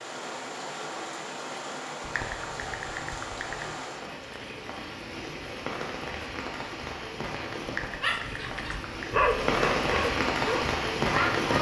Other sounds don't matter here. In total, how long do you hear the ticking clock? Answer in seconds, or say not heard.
not heard.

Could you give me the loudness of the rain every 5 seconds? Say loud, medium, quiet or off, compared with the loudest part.
medium, medium, loud.